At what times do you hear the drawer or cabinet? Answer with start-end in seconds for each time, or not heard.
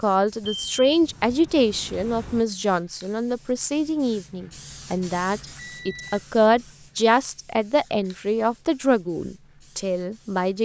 not heard.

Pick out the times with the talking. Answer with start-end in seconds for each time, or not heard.
0.0-10.6.